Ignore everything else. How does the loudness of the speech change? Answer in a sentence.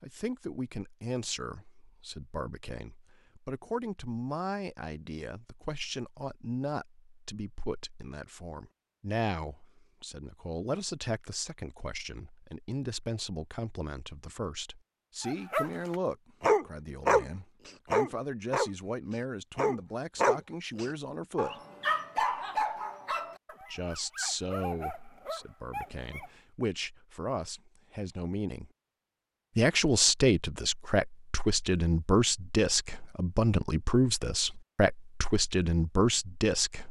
The loudness of the speech goes up.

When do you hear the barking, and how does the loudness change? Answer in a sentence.
You can hear the barking from 15.2 to 26.3 s, getting quieter.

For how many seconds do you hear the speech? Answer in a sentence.
You can hear the speech for 34 seconds altogether.